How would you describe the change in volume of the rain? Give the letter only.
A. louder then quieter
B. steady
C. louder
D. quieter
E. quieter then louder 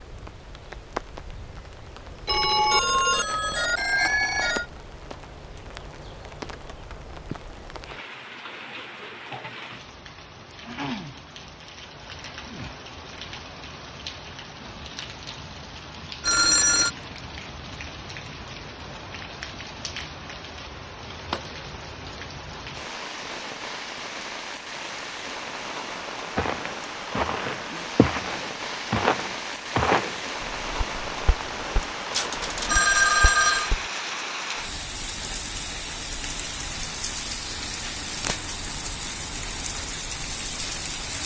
C.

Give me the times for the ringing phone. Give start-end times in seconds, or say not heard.
2.2-4.7, 16.2-16.9, 32.1-33.7.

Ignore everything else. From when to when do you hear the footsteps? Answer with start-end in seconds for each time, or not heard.
26.4-33.9.